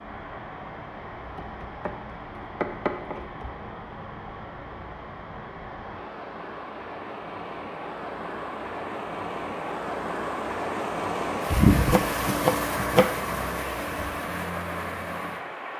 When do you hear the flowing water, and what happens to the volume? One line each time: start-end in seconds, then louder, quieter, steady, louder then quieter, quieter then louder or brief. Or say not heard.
0.0-15.7 louder.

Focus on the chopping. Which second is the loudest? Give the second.
12 s.